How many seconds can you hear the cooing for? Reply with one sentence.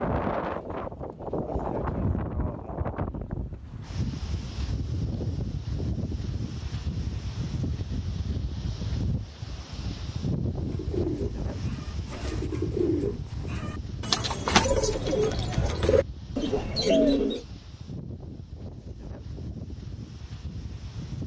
The cooing can be heard for 7 seconds in total.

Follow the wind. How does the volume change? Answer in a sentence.
The volume of the wind goes down.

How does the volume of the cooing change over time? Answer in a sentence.
The loudness of the cooing goes up.